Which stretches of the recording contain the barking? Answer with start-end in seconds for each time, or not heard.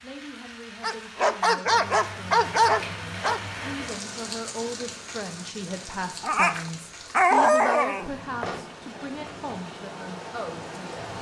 0.8-3.4, 6.2-8.2.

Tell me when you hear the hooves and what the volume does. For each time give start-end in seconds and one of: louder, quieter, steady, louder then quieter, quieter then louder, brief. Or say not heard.
not heard.